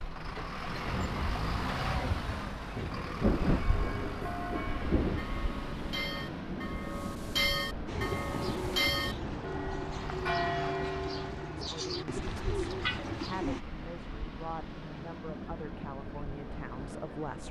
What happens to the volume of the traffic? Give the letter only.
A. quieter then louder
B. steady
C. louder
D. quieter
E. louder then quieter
D.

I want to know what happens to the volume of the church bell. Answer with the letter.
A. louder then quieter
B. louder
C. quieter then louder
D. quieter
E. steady
B.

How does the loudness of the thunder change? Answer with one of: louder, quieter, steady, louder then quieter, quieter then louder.
louder then quieter.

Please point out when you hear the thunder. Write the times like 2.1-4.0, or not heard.
0.8-5.2.